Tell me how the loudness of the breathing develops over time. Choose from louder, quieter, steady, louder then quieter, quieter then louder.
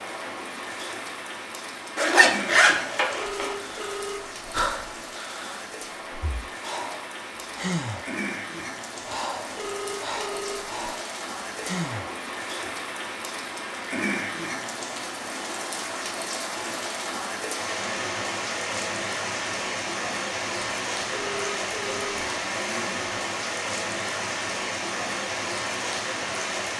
quieter then louder.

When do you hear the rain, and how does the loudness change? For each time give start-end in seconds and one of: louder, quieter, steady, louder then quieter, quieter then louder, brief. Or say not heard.
0.0-26.7 louder.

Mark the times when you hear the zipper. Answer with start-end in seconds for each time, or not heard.
1.9-3.5, 22.4-23.1.